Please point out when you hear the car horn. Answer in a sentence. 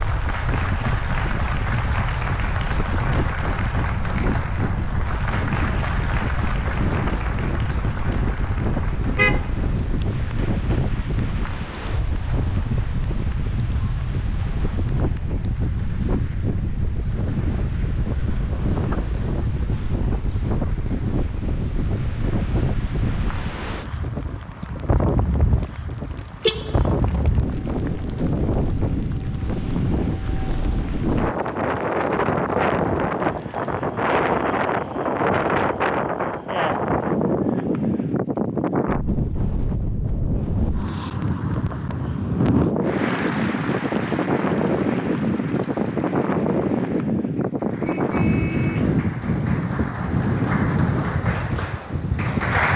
You can hear the car horn from 8.8 to 9.9 s, from 26.4 to 27.3 s and from 47.9 to 48.9 s.